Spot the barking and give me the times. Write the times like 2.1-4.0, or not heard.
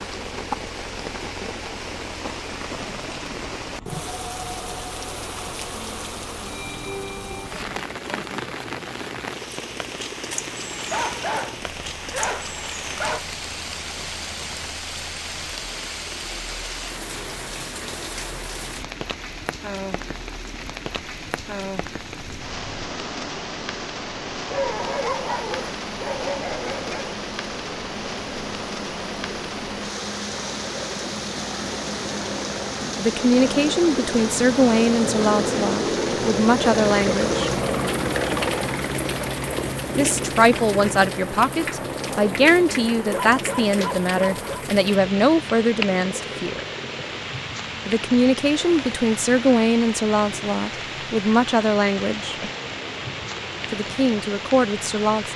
10.9-13.2, 24.4-27.2, 43.0-44.6.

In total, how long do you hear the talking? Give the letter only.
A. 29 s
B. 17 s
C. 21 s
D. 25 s
B.